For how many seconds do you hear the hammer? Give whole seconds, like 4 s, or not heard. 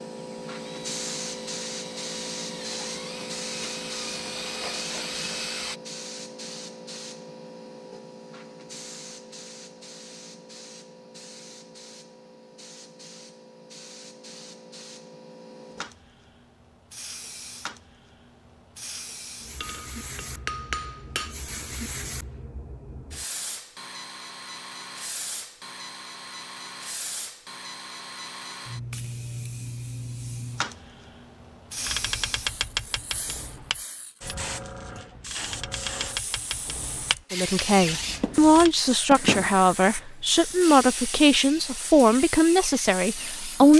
2 s.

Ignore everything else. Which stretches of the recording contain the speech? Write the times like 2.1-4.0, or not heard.
37.3-43.7.